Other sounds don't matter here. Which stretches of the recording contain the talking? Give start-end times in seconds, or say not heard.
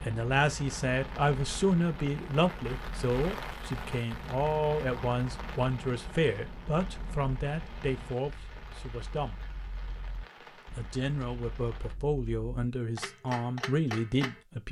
0.0-9.4, 10.6-14.6.